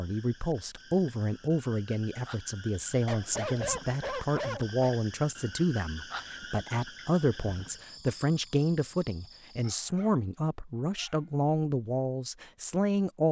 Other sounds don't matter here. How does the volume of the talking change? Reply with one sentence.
The volume of the talking stays about the same.